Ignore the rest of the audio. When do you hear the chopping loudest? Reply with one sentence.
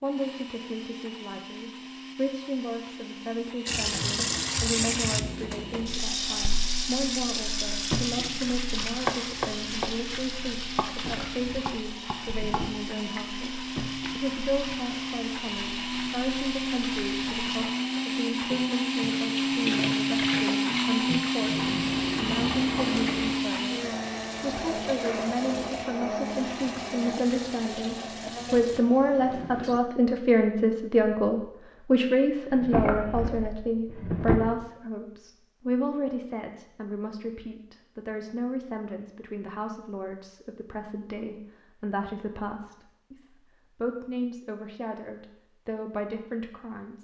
The volume of the chopping peaks at 9 seconds.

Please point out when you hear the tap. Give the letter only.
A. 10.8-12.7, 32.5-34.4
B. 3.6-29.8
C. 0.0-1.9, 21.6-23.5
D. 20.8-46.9
B.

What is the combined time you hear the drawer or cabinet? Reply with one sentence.
The drawer or cabinet can be heard for 4 seconds in total.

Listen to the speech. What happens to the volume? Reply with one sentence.
The loudness of the speech goes up, then down.